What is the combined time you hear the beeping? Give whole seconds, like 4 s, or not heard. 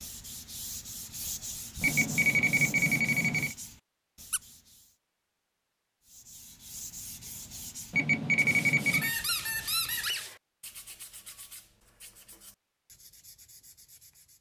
3 s.